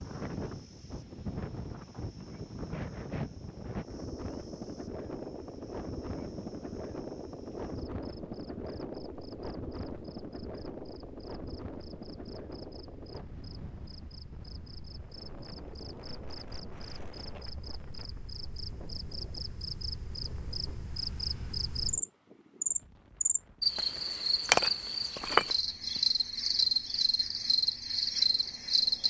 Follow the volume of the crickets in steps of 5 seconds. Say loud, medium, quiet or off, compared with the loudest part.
quiet, quiet, quiet, quiet, loud, loud.